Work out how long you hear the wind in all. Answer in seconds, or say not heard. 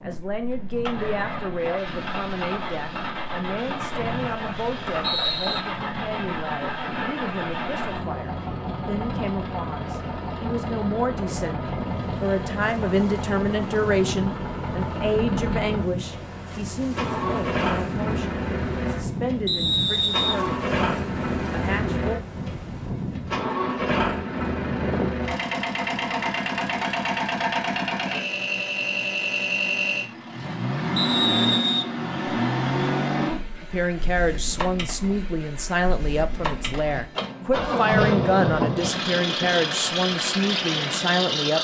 25 s.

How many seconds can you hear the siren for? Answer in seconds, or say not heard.
not heard.